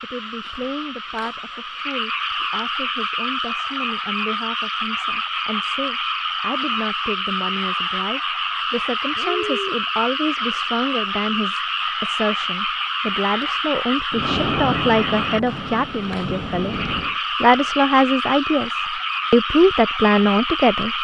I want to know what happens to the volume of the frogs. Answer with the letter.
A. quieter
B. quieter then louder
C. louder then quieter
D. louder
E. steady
E.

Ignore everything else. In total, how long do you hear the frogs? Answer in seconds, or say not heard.
21 s.